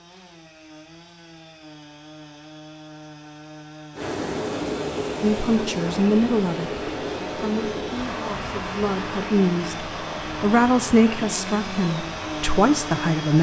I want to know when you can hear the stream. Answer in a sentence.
The stream can be heard from 3.9 to 13.3 s.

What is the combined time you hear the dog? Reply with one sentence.
The dog can't be heard in this clip.